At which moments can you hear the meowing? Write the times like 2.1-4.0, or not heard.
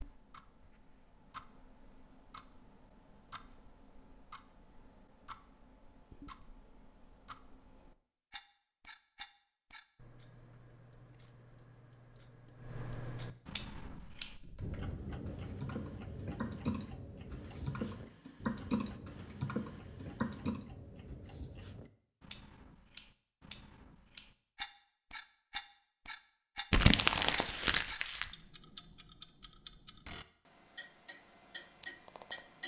not heard.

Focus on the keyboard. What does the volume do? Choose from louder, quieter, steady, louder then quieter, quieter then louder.
louder.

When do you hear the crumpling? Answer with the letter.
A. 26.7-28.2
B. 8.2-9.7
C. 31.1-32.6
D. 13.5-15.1
A.